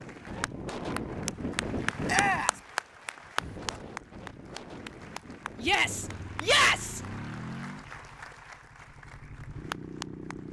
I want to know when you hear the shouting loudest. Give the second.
7 s.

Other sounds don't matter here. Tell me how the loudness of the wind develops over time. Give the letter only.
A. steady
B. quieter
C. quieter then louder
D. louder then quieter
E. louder
B.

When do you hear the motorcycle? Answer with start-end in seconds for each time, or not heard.
6.0-10.4.